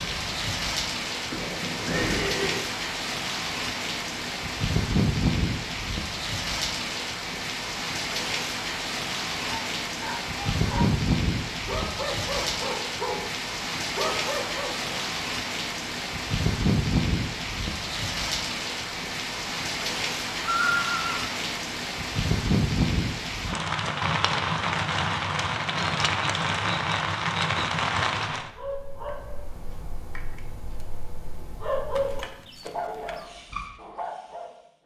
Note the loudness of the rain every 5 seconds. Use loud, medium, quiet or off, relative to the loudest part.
loud, loud, loud, loud, loud, loud, off.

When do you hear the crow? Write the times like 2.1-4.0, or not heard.
not heard.